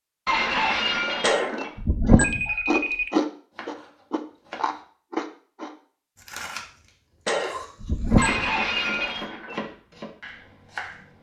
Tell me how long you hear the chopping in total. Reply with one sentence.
You can hear the chopping for 5 seconds altogether.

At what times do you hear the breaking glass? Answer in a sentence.
You can hear the breaking glass from 0.2 to 1.7 s and from 8.2 to 9.6 s.